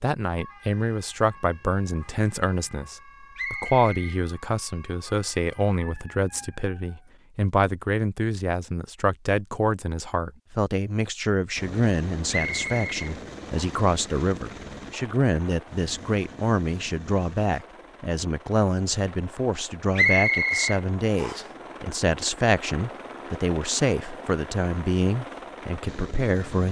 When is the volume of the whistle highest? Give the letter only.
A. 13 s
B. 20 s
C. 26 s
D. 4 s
B.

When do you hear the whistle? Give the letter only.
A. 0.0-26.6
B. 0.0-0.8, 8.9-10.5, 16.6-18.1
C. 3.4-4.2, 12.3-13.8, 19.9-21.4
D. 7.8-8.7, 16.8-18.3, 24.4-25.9
C.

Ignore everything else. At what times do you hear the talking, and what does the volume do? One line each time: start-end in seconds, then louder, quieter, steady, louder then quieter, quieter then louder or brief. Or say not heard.
0.0-26.6 steady.